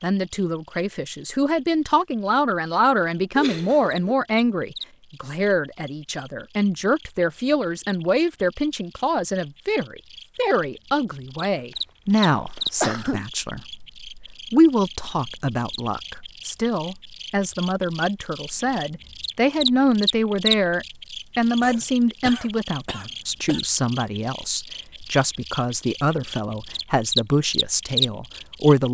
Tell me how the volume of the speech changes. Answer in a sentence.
The loudness of the speech stays about the same.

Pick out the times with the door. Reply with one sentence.
The door can't be heard in this clip.